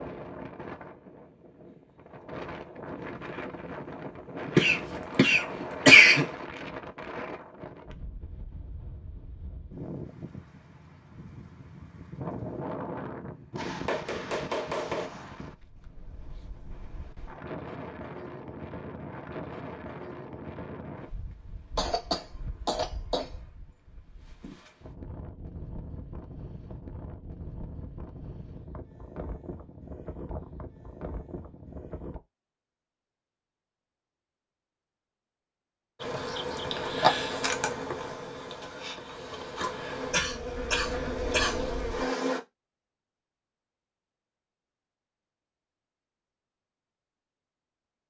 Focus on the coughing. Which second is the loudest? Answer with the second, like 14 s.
6 s.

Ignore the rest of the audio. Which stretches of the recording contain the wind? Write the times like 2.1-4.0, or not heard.
0.0-32.2.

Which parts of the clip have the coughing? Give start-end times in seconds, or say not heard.
4.5-6.2, 21.8-23.5, 40.1-41.6.